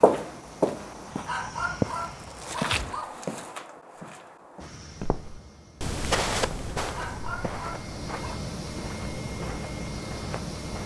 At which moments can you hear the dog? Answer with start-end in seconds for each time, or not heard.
1.1-3.3, 6.8-8.4.